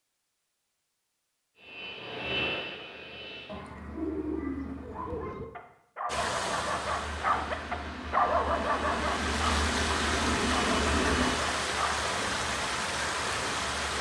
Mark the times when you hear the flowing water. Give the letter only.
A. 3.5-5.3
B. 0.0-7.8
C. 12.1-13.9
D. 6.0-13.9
D.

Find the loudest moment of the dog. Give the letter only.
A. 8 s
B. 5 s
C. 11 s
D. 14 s
A.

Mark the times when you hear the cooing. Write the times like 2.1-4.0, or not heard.
3.5-5.3.